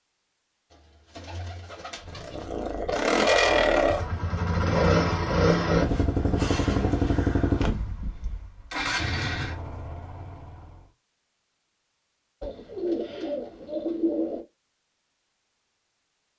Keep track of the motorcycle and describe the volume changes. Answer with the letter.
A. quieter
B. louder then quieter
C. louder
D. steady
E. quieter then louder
A.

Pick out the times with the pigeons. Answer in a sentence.
You can hear the pigeons from 0.7 to 2.5 s, from 5.8 to 7.2 s and from 12.4 to 14.4 s.